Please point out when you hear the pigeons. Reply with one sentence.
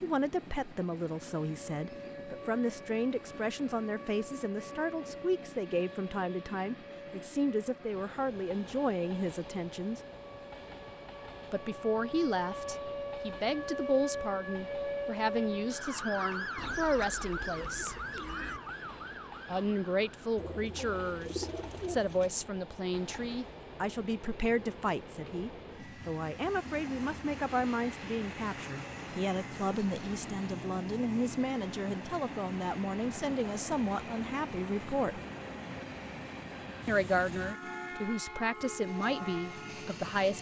You can hear the pigeons from 16.6 to 18.6 s and from 20.4 to 22.4 s.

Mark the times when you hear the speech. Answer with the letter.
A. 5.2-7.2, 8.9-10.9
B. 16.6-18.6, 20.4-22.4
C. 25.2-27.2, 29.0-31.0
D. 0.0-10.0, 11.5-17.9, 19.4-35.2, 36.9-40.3
D.